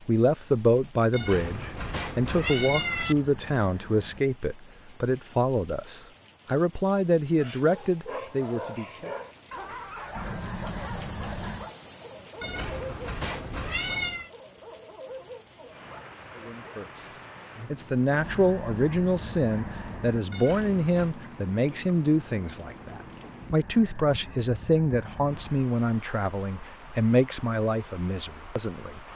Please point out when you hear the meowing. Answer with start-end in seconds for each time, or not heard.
1.1-3.1, 12.4-14.3, 20.3-21.1.